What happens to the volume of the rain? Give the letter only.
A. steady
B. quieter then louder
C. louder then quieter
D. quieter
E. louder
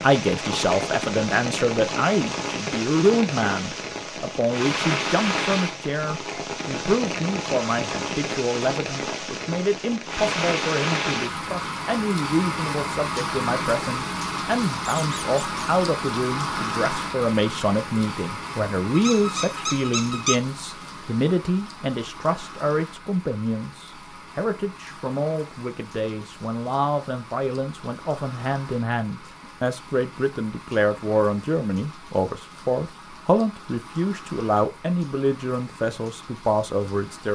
D.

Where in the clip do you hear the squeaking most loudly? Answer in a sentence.
The loudest moment of the squeaking is at 20 seconds.